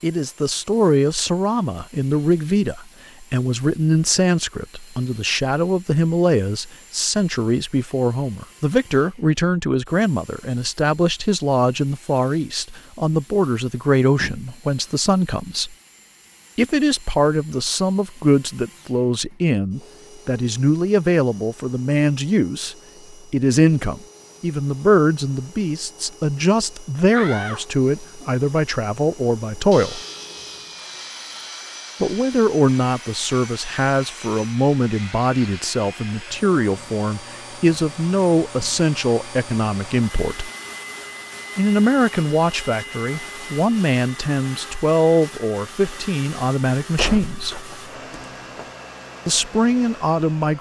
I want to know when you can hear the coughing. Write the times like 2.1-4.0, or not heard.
not heard.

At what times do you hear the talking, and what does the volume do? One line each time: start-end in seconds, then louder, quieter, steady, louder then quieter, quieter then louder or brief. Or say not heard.
0.0-15.8 steady
16.6-30.0 steady
32.0-40.5 steady
41.5-47.6 steady
49.2-50.5 brief.